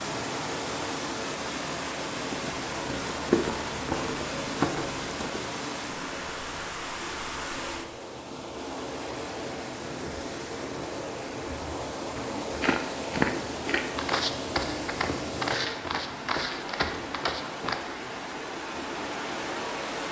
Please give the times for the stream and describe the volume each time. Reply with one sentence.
The stream can be heard from 0.0 to 20.0 s, at a steady volume.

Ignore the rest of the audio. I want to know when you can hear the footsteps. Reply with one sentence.
The footsteps can be heard from 2.3 to 5.5 s and from 12.2 to 17.8 s.